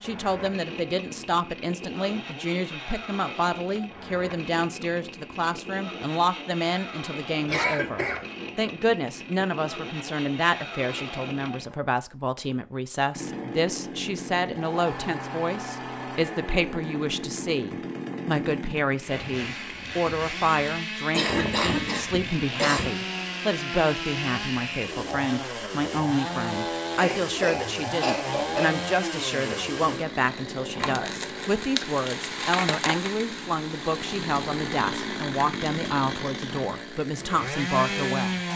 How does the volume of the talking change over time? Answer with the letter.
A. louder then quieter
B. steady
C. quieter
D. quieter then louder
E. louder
B.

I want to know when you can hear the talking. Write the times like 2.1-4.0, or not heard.
0.0-38.4.